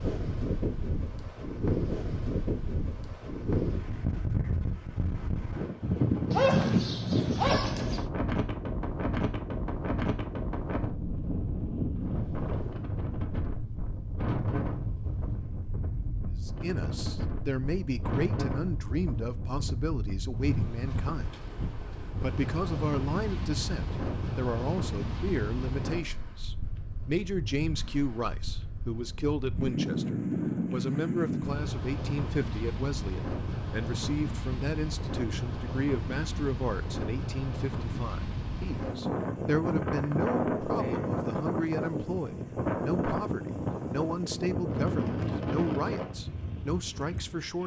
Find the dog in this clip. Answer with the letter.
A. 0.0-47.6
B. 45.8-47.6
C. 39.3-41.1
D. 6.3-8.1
D.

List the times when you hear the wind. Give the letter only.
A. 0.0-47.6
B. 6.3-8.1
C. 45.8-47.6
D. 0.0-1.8
A.